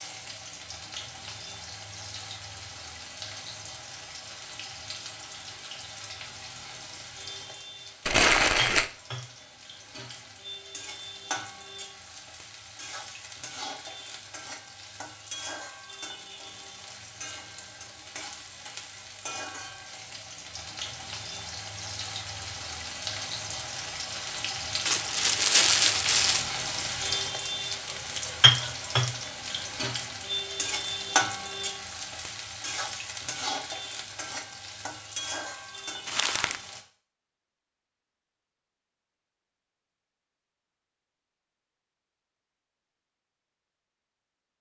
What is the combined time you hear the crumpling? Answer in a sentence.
You can hear the crumpling for 3 seconds altogether.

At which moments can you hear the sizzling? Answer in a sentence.
You can hear the sizzling from 0.0 to 36.9 s.